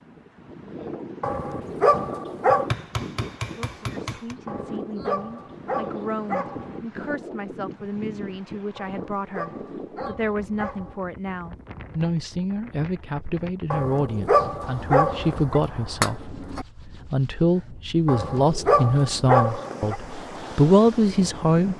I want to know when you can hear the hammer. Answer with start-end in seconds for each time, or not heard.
2.5-4.3, 14.6-16.6.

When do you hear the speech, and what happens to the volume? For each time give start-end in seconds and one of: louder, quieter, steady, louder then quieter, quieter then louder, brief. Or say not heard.
3.5-21.7 louder.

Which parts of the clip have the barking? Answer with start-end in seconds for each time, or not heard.
1.2-2.7, 4.5-6.8, 8.8-11.1, 13.7-15.6, 18.1-19.9.